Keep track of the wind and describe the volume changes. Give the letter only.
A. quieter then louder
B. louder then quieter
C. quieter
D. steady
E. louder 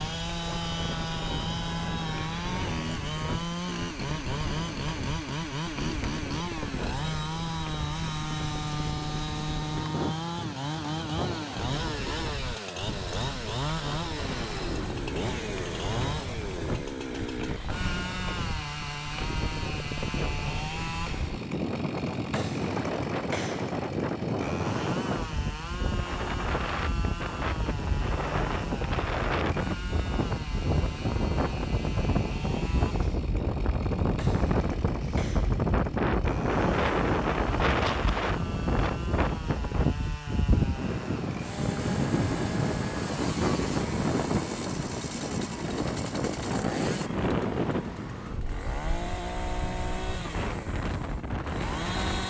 E.